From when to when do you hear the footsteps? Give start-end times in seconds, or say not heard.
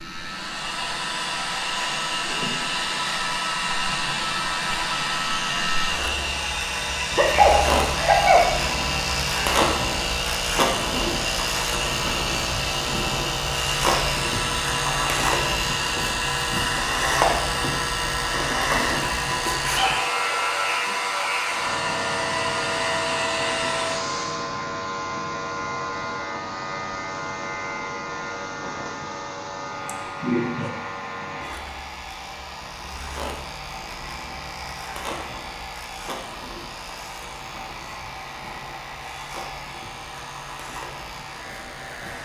not heard.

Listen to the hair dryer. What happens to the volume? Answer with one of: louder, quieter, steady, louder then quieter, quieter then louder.
quieter.